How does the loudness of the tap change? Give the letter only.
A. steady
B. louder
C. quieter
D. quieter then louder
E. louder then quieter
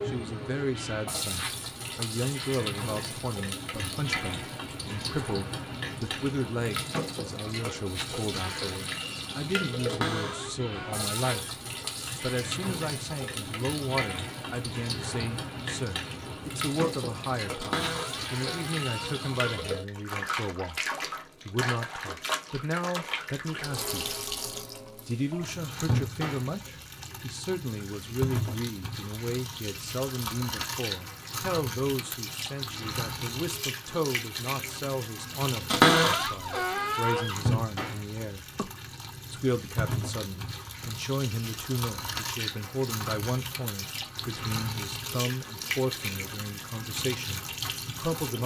A.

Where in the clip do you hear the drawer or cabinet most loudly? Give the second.
36 s.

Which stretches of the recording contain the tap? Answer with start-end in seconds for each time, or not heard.
0.0-48.4.